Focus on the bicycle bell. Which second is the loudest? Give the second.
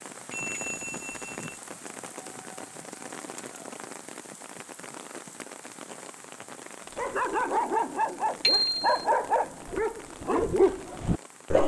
9 s.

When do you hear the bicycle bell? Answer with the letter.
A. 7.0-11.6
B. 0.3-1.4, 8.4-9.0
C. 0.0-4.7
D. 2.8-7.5
B.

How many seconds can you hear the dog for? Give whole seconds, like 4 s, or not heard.
5 s.